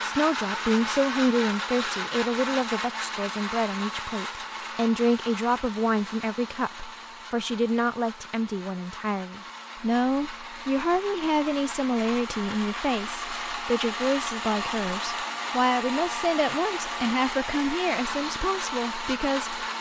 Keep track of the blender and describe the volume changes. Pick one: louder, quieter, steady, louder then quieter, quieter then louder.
quieter then louder.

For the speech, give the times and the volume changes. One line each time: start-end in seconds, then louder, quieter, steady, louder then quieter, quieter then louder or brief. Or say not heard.
0.0-19.7 steady.